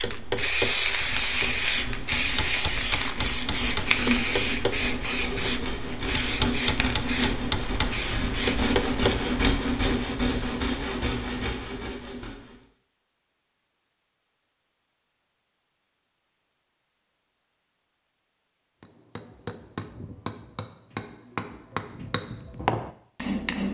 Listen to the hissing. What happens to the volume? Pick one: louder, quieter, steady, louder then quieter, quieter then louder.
quieter.